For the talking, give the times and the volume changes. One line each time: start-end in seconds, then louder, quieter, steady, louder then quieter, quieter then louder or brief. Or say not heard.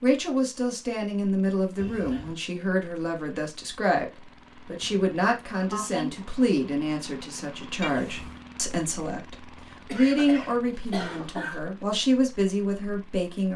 0.0-13.5 steady.